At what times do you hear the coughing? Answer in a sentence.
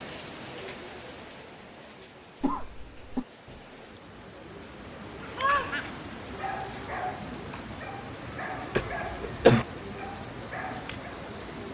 You can hear the coughing from 2.4 to 3.2 s and from 8.8 to 9.7 s.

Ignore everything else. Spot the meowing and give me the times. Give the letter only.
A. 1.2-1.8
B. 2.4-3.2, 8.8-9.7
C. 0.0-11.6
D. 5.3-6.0
D.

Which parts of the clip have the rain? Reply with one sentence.
You can hear the rain from 0.0 to 11.6 s.